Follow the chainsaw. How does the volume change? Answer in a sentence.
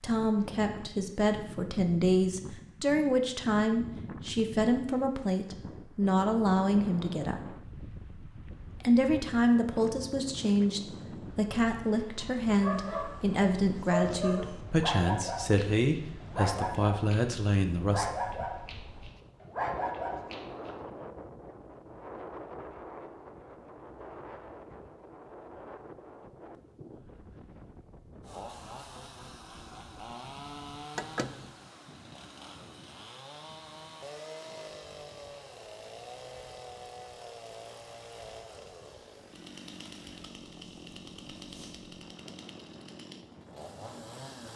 The volume of the chainsaw stays about the same.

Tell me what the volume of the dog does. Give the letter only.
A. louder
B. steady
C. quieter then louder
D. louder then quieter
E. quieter
B.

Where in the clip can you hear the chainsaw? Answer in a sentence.
The chainsaw can be heard from 28.2 to 44.5 s.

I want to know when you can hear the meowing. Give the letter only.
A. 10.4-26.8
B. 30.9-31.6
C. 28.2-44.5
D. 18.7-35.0
B.